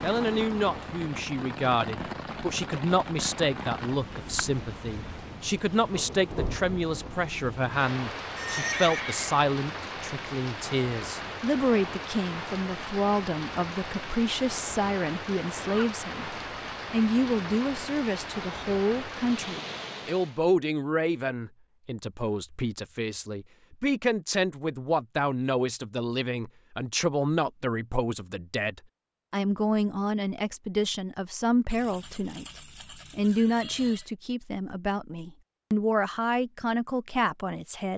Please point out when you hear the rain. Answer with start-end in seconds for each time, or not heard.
0.0-20.4.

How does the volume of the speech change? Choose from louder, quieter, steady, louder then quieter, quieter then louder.
steady.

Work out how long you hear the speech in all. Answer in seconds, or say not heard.
37 s.